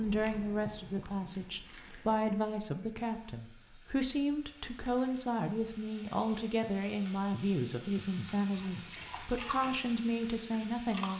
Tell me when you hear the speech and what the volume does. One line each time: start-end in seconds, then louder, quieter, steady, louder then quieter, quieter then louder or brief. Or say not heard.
0.0-11.1 steady.